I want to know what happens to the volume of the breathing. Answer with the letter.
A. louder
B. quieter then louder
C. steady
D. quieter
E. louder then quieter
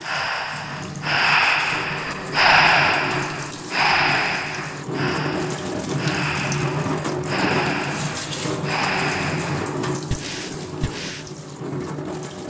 D.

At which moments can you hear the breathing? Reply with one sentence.
You can hear the breathing from 0.0 to 11.3 s.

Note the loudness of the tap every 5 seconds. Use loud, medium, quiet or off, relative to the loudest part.
medium, loud, medium.